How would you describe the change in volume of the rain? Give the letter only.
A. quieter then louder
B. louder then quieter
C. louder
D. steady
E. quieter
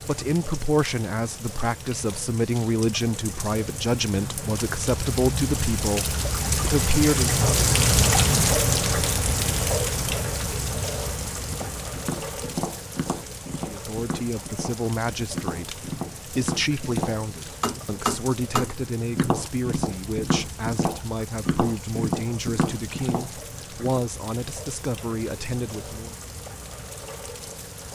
B.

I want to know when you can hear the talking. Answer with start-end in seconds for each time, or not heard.
0.1-7.5, 13.7-26.1.